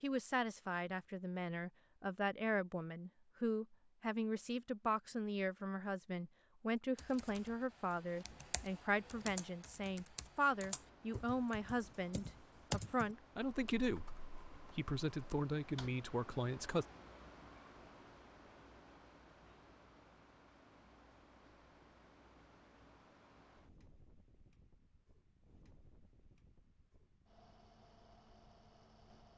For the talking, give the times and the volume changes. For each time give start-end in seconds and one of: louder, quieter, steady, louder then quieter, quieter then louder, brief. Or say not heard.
0.0-16.9 steady.